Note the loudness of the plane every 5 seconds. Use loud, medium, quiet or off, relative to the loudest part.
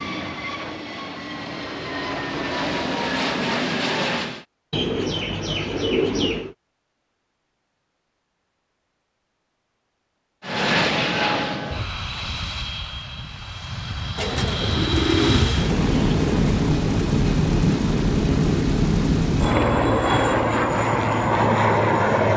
medium, off, medium, loud, loud.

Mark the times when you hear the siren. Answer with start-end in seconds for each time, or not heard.
not heard.